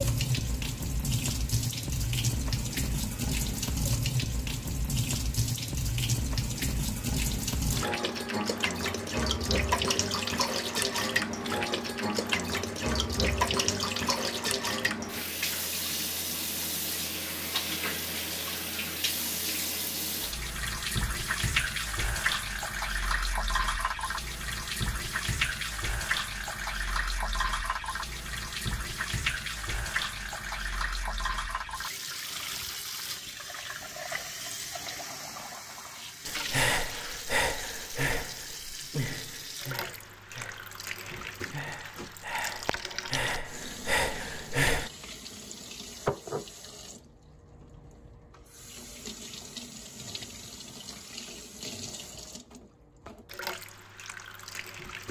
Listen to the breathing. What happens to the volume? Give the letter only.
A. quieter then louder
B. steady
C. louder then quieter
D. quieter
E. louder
A.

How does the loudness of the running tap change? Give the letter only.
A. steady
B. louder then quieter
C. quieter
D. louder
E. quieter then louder
C.